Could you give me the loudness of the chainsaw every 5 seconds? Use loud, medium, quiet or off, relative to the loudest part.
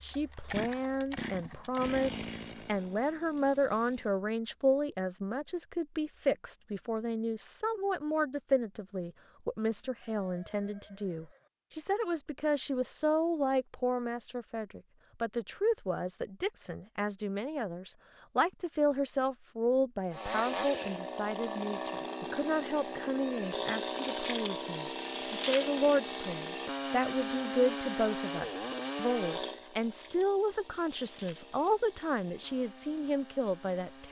medium, off, off, off, loud, loud, quiet.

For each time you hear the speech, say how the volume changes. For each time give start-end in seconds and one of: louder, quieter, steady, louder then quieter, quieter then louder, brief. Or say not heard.
0.0-34.0 steady.